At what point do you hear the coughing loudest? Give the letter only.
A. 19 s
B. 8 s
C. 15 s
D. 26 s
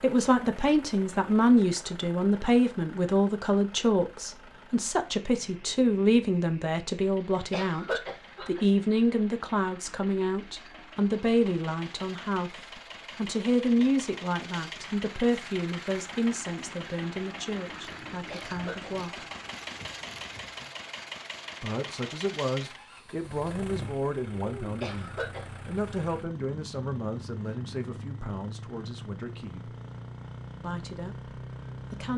B.